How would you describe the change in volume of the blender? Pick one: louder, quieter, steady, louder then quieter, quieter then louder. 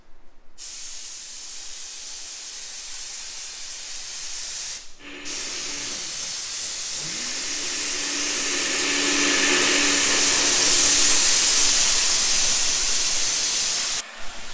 louder then quieter.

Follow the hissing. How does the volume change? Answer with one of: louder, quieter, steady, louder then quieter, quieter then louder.
louder.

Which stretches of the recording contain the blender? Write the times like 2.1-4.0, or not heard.
5.0-14.4.